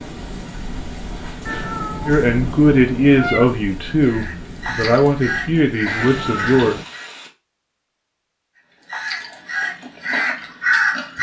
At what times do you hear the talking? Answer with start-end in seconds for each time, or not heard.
2.0-6.8.